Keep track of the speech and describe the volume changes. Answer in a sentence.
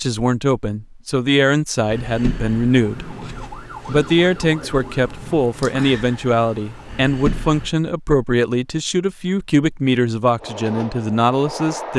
The volume of the speech stays about the same.